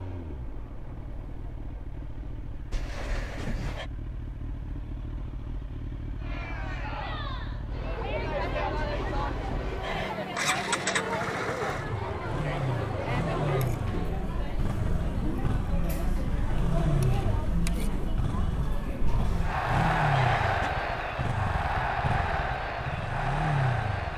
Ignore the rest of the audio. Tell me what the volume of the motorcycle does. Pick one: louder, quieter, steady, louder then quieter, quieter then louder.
louder.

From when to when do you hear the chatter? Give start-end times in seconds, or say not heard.
6.2-24.1.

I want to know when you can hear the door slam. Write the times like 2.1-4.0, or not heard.
2.7-3.9, 8.8-10.2, 19.1-20.7.